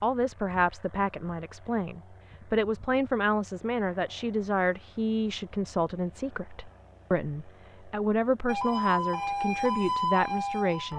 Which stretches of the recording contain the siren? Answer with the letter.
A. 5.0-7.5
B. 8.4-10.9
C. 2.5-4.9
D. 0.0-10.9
B.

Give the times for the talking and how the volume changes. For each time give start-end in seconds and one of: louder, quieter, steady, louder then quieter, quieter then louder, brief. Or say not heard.
0.0-10.9 steady.